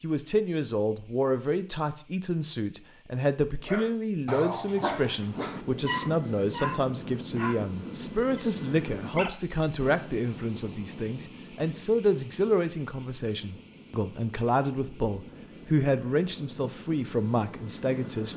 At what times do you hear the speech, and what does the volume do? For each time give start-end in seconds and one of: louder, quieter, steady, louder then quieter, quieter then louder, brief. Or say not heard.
0.0-18.3 steady.